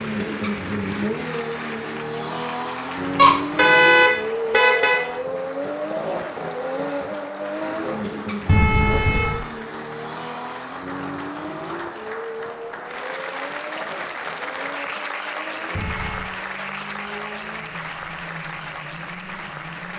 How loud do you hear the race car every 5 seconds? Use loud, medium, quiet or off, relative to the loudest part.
loud, loud, medium, quiet.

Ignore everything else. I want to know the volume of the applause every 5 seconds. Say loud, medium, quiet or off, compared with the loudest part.
loud, medium, loud, loud.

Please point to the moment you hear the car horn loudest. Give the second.
4 s.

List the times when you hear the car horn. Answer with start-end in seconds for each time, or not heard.
3.1-5.0, 8.4-9.4, 15.7-16.4.